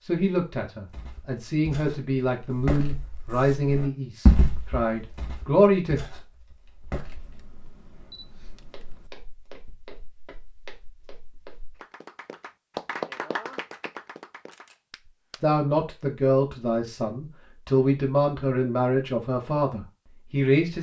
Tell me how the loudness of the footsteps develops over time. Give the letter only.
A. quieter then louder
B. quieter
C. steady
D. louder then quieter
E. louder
D.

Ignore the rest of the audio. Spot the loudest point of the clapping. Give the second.
13 s.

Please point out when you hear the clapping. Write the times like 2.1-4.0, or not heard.
11.8-15.6.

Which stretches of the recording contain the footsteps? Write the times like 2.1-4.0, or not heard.
0.8-11.8.